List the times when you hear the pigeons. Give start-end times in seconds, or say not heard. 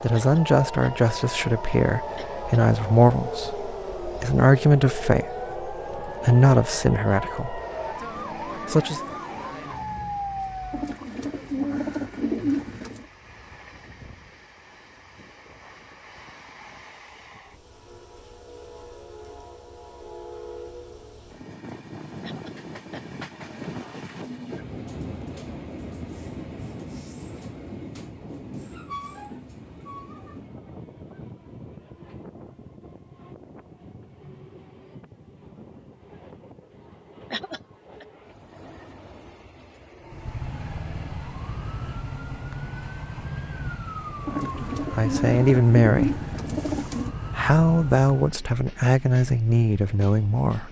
10.7-13.1, 44.2-47.1.